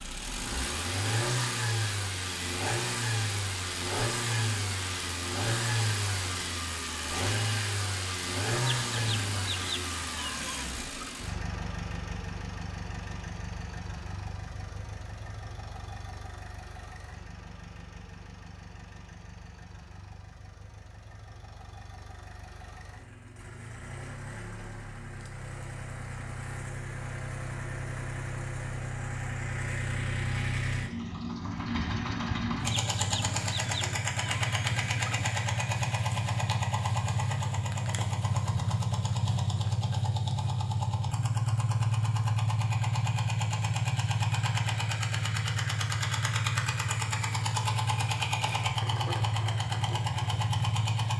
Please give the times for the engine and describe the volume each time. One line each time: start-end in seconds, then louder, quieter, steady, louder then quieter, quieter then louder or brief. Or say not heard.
0.0-51.1 quieter then louder.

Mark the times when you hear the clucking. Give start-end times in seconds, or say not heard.
8.7-11.2, 32.7-35.3.